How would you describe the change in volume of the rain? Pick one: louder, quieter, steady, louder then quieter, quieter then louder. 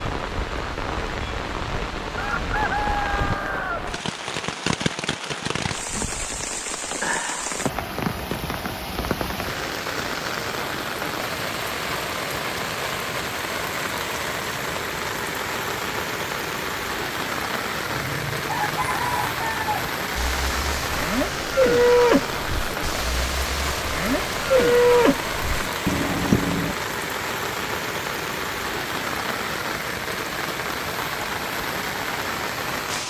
steady.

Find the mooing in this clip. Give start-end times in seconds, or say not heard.
20.1-26.8.